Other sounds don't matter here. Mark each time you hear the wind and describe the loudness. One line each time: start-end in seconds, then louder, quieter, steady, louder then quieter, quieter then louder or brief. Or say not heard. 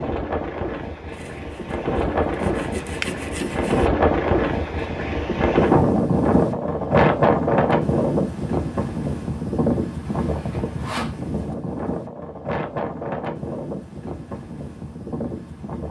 0.0-15.8 louder then quieter.